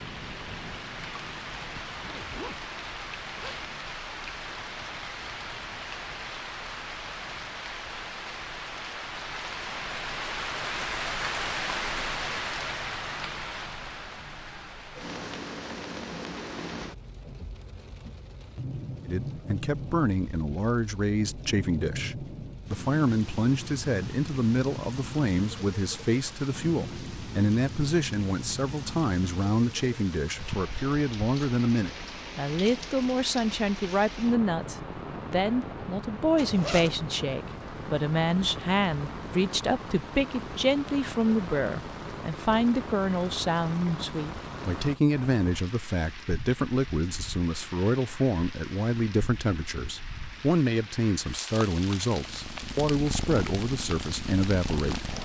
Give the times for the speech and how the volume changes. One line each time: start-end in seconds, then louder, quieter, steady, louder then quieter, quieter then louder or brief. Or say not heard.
19.1-55.1 steady.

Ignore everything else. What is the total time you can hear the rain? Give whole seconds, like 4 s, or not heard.
55 s.